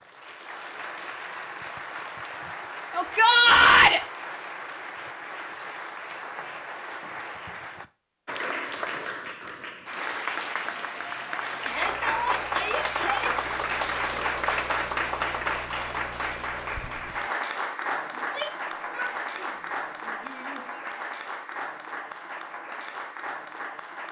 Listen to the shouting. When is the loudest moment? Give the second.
4 s.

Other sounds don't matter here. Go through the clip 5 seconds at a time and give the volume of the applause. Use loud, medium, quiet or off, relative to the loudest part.
medium, medium, loud, loud, medium.